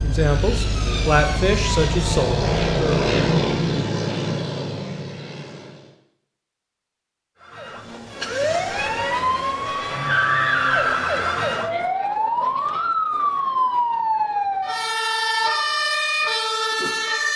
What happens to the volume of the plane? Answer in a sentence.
The volume of the plane goes up, then down.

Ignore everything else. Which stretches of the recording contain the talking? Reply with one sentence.
The talking can be heard from 0.0 to 3.0 s.